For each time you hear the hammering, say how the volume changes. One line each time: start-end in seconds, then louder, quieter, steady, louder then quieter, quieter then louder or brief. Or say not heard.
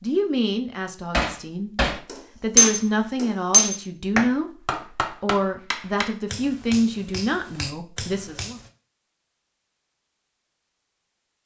1.1-8.7 quieter.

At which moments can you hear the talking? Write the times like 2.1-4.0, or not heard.
0.0-8.6.